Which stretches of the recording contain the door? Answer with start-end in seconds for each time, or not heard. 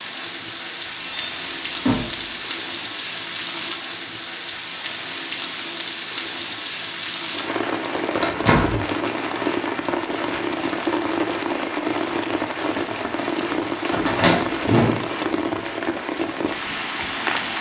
1.0-2.4, 8.2-8.8, 13.9-15.1.